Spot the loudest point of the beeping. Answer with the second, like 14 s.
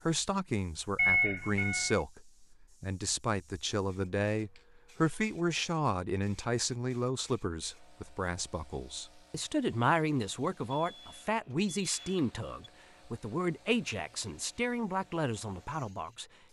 1 s.